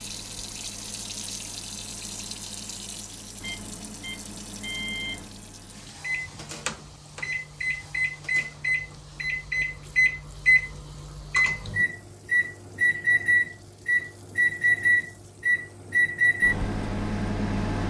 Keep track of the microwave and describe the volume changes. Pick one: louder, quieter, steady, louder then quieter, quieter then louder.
louder.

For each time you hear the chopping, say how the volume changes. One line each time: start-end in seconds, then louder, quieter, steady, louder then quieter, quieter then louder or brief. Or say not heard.
not heard.